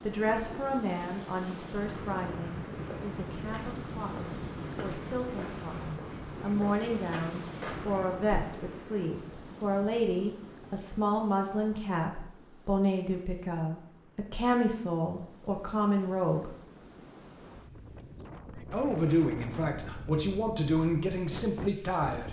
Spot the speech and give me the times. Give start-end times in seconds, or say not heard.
0.0-16.5, 18.6-22.2.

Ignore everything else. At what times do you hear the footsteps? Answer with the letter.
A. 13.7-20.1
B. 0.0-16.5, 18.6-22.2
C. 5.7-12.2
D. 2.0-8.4
D.